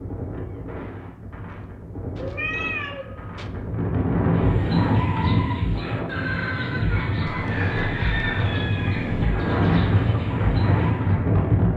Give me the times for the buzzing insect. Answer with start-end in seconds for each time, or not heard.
not heard.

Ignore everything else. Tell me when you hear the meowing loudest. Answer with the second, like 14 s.
3 s.